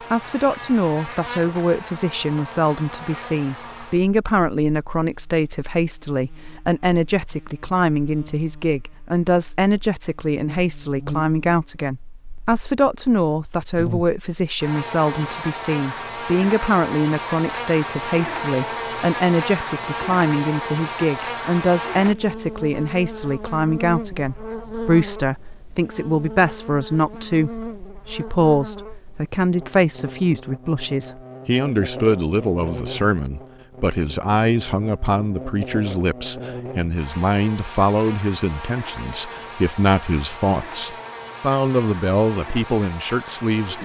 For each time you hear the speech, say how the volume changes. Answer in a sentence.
You can hear the speech from 0.1 to 43.8 s, at a steady volume.